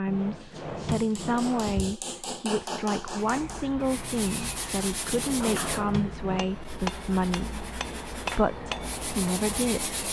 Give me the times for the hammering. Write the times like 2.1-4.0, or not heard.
0.3-8.9.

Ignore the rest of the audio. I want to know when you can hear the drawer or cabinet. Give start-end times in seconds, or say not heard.
0.1-1.9, 5.1-6.5.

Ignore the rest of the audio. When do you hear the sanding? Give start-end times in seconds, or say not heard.
3.1-10.0.